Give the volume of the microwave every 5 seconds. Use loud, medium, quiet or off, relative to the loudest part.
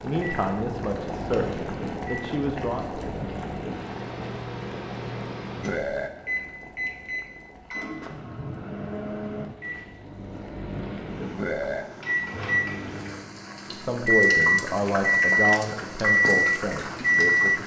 quiet, quiet, medium, loud.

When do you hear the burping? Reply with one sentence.
You can hear the burping from 5.6 to 6.1 s and from 11.3 to 11.8 s.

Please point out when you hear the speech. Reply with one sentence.
You can hear the speech from 0.0 to 2.9 s and from 13.7 to 17.6 s.